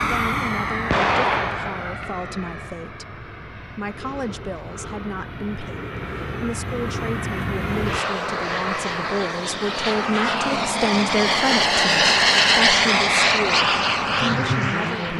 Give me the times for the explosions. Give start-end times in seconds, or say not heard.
0.9-2.0.